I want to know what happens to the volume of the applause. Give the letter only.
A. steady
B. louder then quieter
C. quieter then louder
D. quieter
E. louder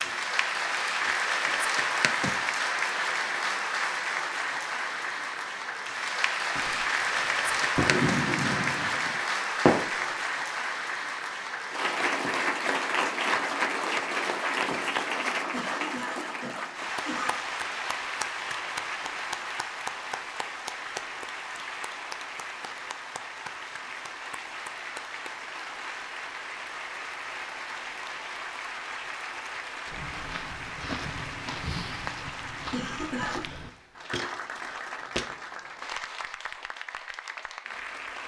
D.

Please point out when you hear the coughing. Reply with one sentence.
You can hear the coughing from 15.5 to 17.4 s and from 32.7 to 33.5 s.